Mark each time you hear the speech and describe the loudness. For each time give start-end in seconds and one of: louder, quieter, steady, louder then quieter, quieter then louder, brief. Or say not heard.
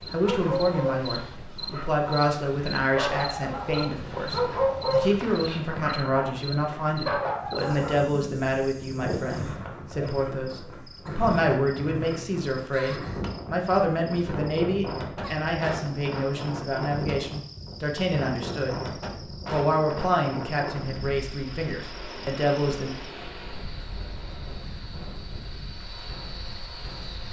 0.0-22.9 steady.